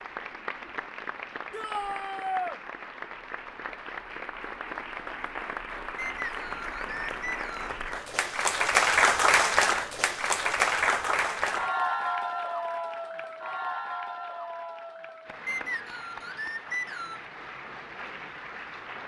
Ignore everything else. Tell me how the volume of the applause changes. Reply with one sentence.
The volume of the applause goes up, then down.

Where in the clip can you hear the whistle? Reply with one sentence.
You can hear the whistle from 6.0 to 7.7 s and from 15.4 to 17.2 s.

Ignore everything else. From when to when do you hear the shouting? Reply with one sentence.
The shouting can be heard from 1.5 to 2.6 s.